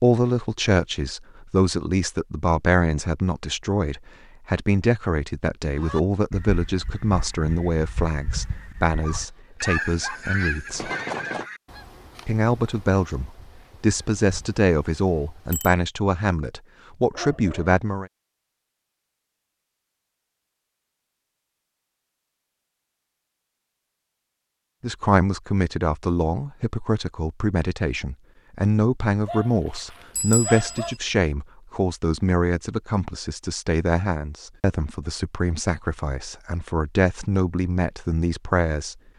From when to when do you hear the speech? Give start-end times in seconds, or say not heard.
0.0-10.9, 12.2-18.1, 24.8-39.0.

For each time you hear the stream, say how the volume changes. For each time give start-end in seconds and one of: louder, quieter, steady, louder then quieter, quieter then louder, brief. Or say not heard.
not heard.